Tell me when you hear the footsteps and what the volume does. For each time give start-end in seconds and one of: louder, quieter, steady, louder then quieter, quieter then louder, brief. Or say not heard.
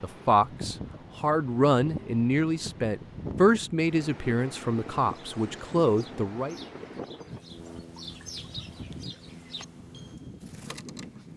not heard.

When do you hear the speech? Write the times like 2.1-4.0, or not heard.
0.0-6.5.